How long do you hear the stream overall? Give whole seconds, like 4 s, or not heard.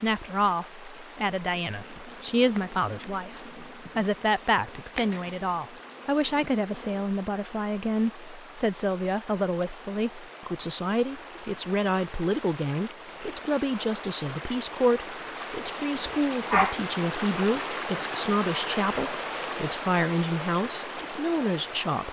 22 s.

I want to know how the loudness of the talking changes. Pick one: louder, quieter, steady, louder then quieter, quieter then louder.
steady.